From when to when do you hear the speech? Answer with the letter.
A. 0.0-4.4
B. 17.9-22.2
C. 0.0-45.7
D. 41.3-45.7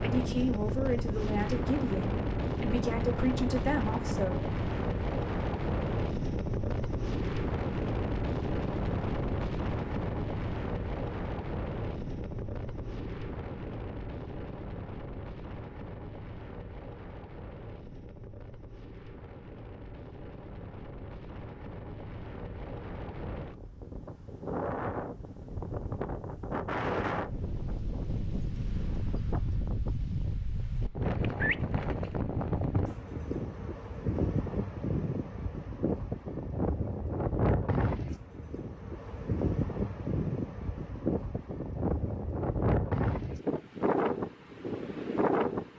A.